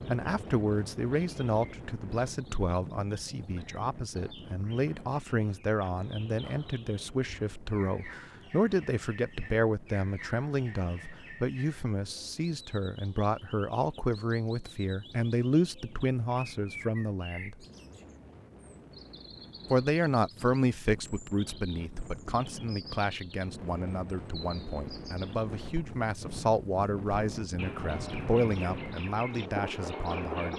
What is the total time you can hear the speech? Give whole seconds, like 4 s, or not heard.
28 s.